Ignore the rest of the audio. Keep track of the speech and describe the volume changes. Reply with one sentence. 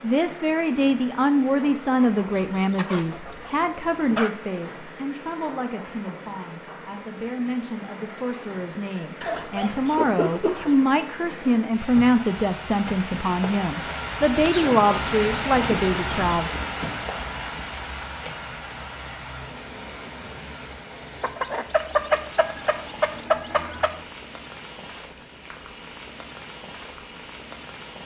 The volume of the speech goes down, then up.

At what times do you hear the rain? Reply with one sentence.
The rain can be heard from 0.0 to 28.0 s.